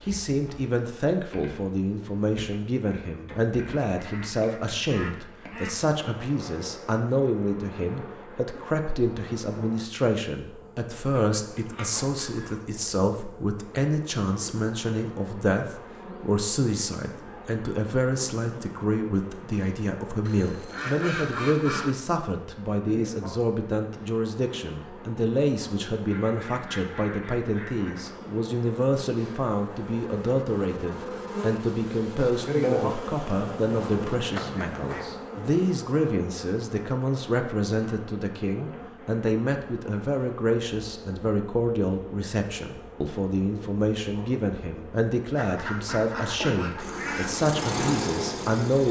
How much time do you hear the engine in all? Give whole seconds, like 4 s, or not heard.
2 s.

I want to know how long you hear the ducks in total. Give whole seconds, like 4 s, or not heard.
10 s.